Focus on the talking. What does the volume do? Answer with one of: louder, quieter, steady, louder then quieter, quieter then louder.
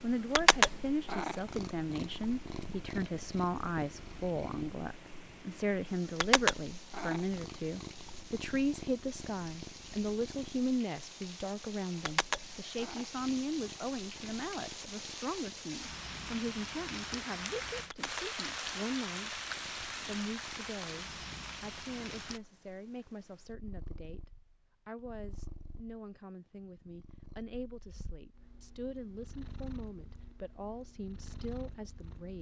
quieter.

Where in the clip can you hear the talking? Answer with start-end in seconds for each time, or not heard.
0.0-19.4, 20.0-32.3.